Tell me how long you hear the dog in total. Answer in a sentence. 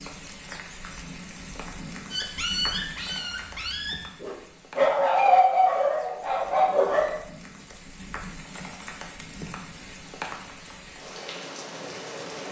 The dog can be heard for 5 seconds in total.